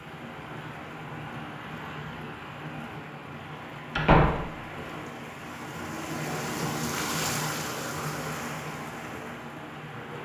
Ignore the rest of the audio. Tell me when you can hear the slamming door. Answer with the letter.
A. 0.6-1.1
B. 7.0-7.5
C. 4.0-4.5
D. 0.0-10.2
C.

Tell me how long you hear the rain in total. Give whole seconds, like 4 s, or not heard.
10 s.